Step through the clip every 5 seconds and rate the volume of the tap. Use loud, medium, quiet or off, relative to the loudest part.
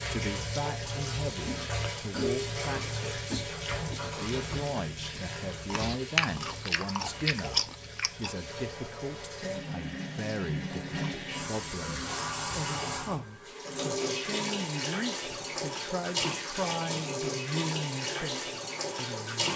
loud, medium, loud, loud.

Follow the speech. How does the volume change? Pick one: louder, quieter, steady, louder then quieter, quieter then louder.
steady.